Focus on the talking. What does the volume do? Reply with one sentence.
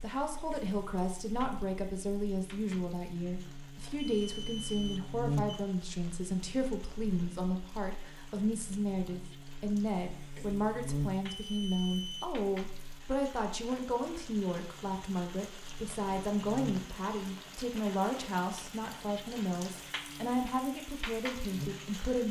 The volume of the talking stays about the same.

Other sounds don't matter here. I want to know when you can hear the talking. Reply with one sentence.
You can hear the talking from 0.0 to 22.2 s.